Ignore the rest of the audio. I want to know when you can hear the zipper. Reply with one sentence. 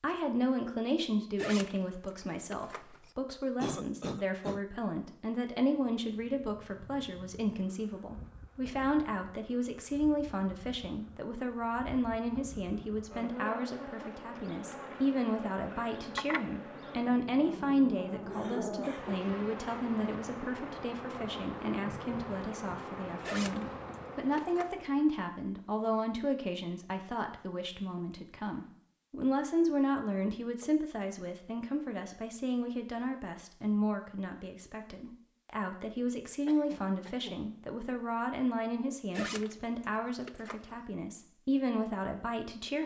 The zipper can be heard from 1.4 to 3.1 s, from 23.2 to 24.7 s and from 39.1 to 40.8 s.